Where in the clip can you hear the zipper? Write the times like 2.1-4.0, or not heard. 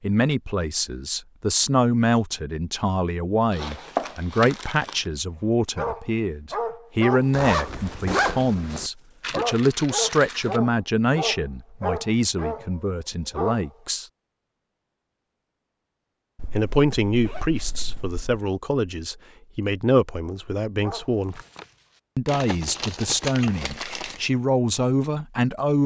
7.3-8.8, 16.4-18.4.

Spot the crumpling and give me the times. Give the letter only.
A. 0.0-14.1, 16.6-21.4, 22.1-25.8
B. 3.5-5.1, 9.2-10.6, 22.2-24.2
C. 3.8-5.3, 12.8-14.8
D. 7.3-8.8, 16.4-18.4
B.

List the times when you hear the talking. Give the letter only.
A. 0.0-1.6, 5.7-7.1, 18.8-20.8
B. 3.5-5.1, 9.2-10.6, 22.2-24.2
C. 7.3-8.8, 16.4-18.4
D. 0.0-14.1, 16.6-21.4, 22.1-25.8
D.